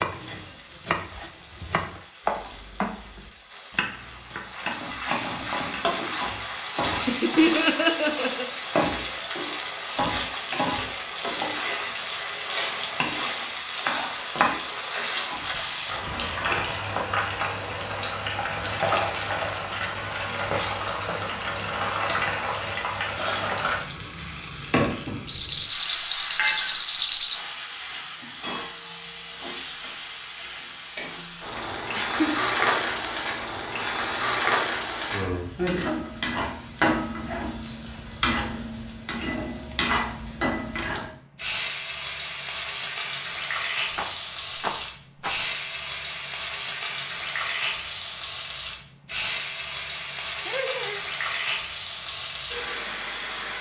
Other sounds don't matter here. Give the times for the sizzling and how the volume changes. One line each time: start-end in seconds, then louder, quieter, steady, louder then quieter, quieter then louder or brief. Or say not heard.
0.0-53.5 steady.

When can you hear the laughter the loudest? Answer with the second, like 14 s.
8 s.